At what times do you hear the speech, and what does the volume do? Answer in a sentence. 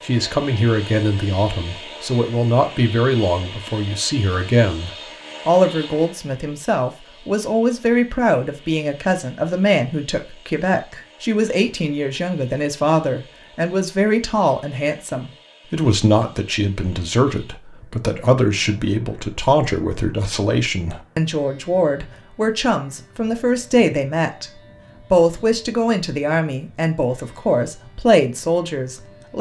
The speech can be heard from 0.0 to 29.3 s, at a steady volume.